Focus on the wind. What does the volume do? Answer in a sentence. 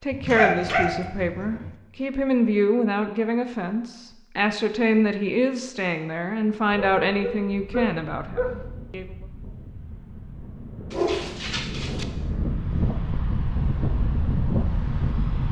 The loudness of the wind goes up.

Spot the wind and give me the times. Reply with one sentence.
The wind can be heard from 6.7 to 15.4 s.